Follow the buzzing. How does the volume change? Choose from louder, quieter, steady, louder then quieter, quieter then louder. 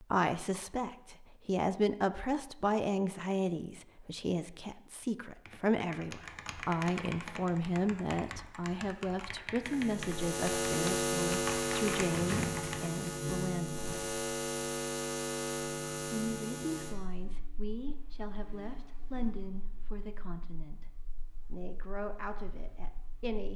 quieter.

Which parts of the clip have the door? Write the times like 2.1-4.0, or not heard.
12.1-13.3.